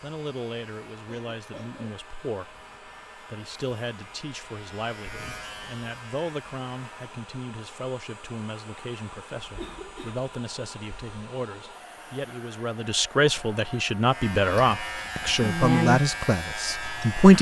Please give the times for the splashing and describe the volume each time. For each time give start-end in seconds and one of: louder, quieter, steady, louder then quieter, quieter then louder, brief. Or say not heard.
not heard.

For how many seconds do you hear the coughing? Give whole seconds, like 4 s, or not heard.
2 s.